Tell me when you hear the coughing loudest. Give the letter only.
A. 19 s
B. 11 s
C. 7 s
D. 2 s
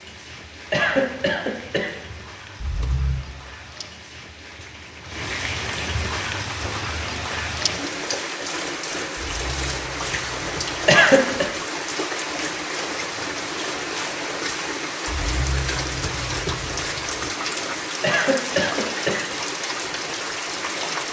B.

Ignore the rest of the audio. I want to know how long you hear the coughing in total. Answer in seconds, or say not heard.
3 s.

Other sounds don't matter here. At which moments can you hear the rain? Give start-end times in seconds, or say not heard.
0.0-21.0.